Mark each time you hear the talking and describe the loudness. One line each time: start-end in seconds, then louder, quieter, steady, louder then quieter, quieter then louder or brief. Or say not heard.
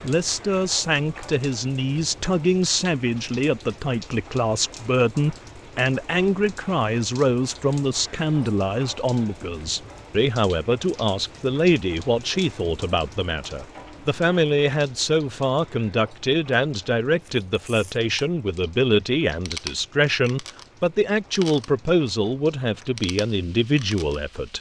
0.0-24.5 steady.